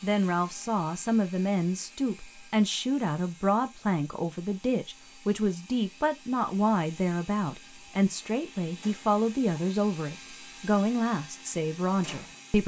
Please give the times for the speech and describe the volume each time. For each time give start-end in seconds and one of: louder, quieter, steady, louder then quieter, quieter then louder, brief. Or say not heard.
0.0-12.6 steady.